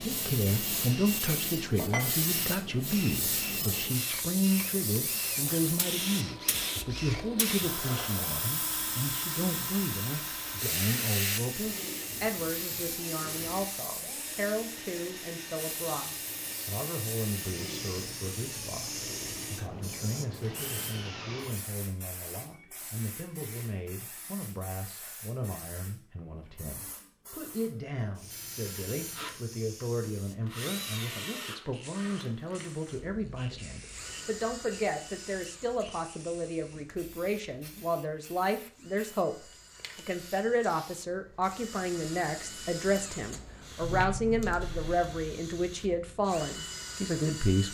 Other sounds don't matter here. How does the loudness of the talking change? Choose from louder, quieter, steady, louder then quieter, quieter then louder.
quieter then louder.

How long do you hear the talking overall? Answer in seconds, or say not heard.
48 s.